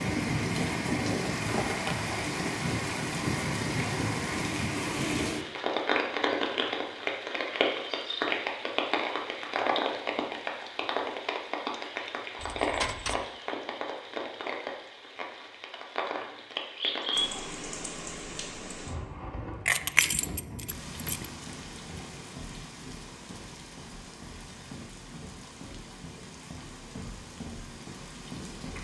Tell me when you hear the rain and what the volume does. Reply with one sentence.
The rain can be heard from 0.0 to 28.7 s, getting quieter.